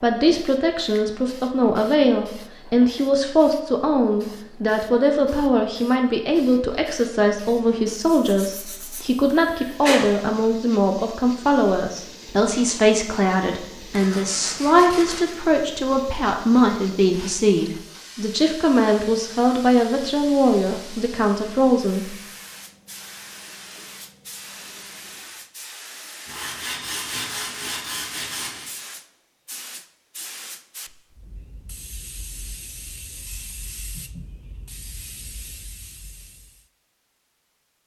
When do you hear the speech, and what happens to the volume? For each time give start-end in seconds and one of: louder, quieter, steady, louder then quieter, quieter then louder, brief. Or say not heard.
0.0-22.1 steady.